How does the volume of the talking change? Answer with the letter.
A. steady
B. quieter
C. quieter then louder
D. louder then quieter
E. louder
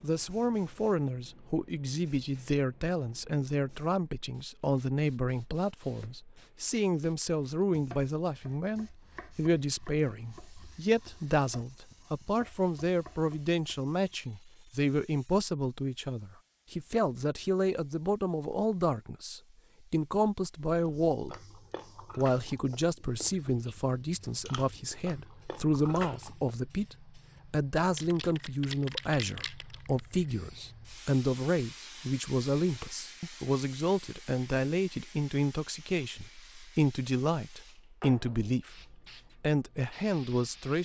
A.